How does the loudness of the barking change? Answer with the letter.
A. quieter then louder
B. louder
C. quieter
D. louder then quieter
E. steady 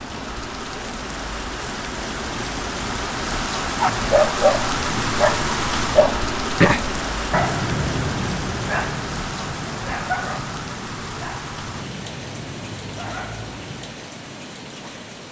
C.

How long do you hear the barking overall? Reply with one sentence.
The barking can be heard for 10 seconds in total.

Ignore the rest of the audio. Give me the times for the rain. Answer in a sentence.
The rain can be heard from 0.0 to 15.2 s.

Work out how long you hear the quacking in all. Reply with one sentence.
The quacking can't be heard in this clip.